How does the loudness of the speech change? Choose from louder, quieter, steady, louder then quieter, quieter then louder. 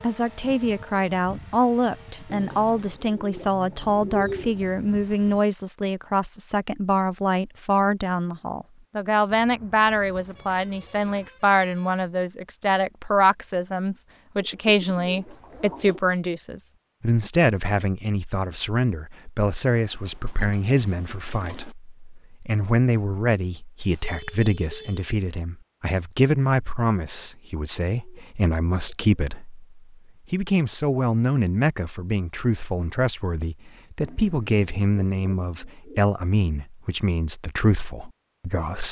steady.